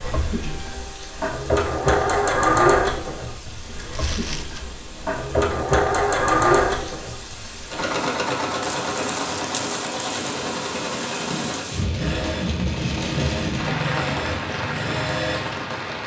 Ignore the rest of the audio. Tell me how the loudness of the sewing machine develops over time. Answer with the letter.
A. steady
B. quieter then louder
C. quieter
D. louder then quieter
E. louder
C.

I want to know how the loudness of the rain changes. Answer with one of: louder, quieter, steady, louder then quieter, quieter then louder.
louder.